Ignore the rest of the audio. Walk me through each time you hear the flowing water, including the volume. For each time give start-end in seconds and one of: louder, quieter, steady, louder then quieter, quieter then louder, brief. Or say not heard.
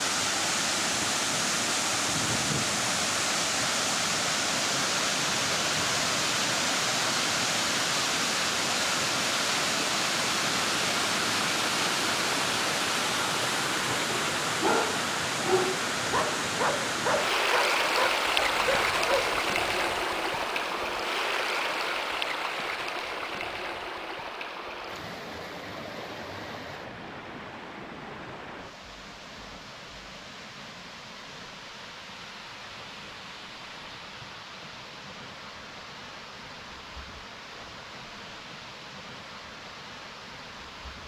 0.0-41.0 quieter.